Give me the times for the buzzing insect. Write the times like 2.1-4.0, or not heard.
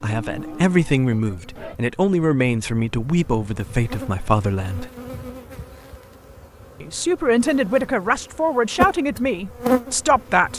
0.2-10.5.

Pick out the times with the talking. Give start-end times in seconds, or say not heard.
0.0-4.9, 6.8-10.5.